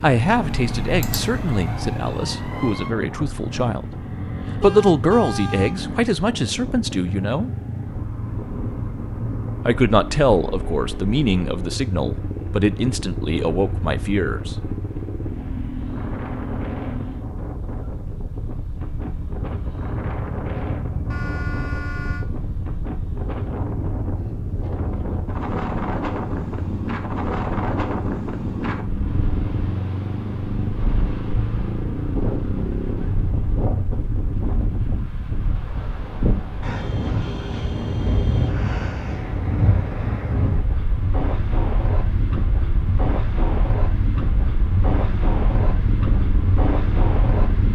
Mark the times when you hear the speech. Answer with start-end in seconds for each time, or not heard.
0.0-7.5, 9.7-14.6.